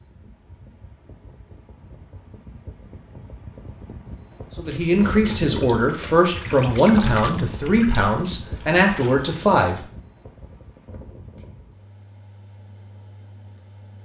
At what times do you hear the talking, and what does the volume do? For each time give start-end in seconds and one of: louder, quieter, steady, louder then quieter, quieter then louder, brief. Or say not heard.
4.5-9.8 steady.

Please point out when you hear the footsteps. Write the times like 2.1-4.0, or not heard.
not heard.